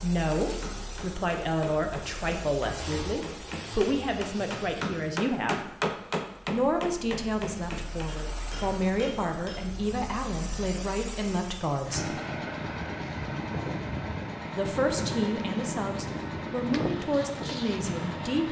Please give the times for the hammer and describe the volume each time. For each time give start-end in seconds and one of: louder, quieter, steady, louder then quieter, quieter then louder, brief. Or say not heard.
0.4-9.7 louder then quieter.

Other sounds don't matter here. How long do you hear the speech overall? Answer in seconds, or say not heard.
15 s.